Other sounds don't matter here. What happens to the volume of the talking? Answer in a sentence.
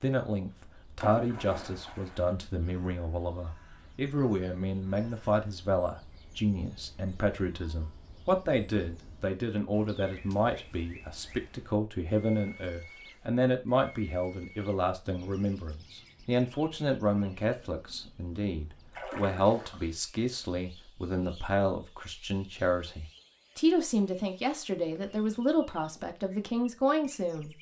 The volume of the talking stays about the same.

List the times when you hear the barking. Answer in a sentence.
The barking can't be heard in this clip.